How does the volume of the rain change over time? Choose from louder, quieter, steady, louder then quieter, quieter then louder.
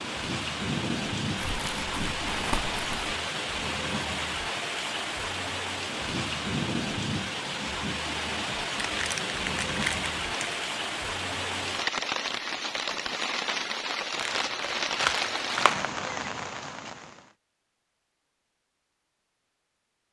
steady.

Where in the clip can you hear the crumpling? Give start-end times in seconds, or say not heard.
1.4-3.1, 8.8-10.6, 14.1-15.9.